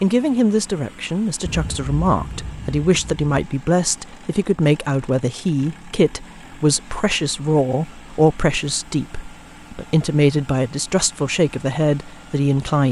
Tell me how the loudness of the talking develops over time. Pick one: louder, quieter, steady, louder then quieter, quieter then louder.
steady.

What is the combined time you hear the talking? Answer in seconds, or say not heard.
13 s.